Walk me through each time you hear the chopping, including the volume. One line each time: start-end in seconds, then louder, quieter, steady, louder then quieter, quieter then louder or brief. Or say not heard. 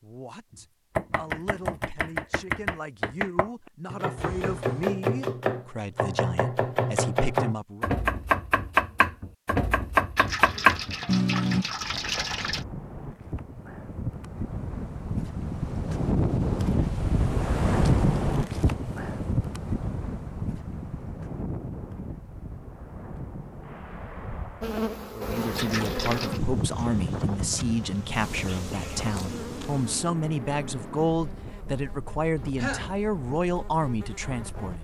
0.5-11.7 louder.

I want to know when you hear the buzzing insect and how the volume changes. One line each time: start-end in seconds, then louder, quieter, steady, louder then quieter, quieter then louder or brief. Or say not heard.
24.6-34.7 quieter.